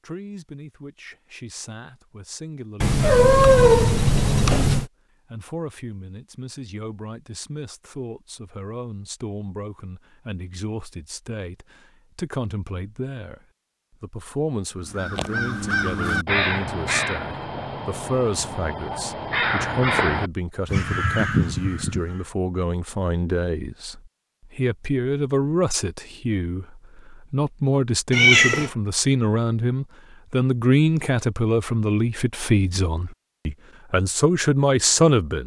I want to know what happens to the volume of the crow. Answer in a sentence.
The loudness of the crow goes down, then up.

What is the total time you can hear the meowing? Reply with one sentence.
The meowing can be heard for 3 seconds in total.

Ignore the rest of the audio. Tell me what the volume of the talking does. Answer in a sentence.
The loudness of the talking goes up.